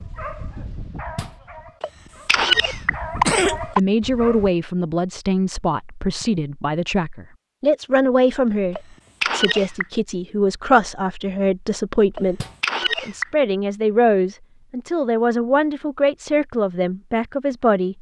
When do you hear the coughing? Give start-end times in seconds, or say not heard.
1.8-3.8, 8.8-9.8, 12.2-13.2.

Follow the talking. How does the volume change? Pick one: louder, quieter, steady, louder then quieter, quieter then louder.
steady.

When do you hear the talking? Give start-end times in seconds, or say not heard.
3.6-17.9.